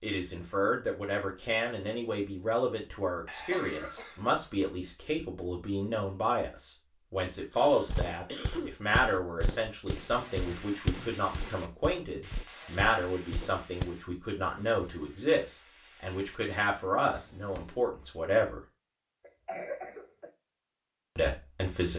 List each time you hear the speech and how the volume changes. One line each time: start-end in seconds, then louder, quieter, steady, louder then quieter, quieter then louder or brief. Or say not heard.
0.0-18.6 steady
21.1-21.9 brief.